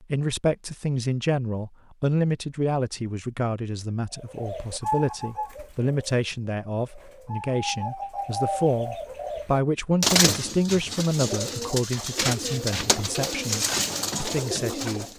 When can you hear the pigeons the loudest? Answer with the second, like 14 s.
10 s.